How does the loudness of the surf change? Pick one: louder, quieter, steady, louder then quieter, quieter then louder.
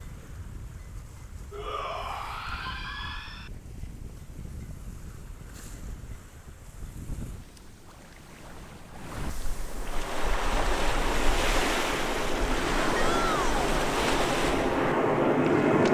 louder.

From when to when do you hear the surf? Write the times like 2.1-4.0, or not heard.
0.0-15.8.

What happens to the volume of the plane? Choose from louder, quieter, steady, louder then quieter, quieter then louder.
louder.